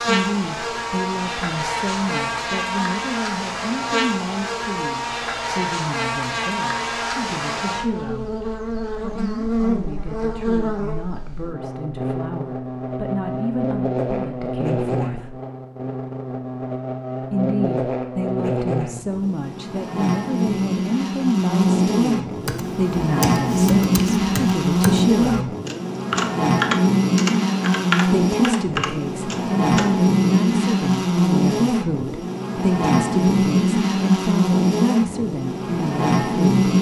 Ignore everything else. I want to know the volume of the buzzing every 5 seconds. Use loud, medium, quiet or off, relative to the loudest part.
medium, medium, medium, medium, loud, loud, loud, loud.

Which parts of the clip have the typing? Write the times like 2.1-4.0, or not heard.
22.4-30.1.